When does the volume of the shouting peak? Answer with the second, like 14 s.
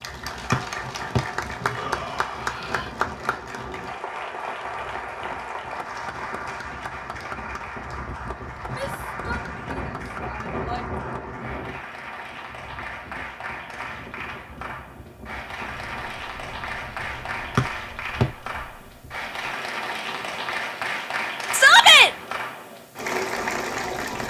22 s.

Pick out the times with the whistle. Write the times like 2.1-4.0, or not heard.
0.5-1.2, 17.6-18.2.